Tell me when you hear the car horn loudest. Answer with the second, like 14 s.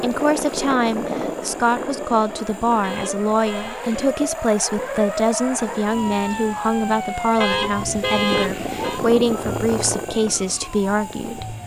8 s.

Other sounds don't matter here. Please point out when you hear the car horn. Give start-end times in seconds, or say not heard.
2.8-3.9, 7.4-9.0.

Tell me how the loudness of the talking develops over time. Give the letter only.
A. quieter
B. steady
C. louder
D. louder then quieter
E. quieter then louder
B.